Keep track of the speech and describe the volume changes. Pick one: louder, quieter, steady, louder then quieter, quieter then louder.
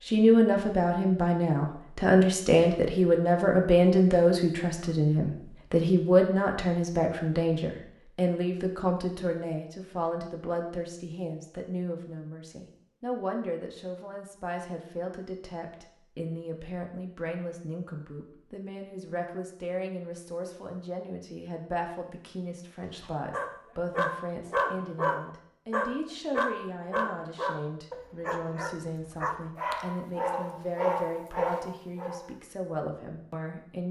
quieter.